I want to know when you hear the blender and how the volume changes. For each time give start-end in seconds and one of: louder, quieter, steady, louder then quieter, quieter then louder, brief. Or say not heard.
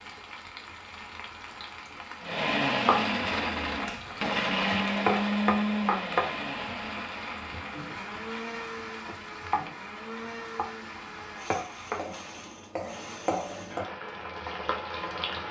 2.2-13.8 quieter.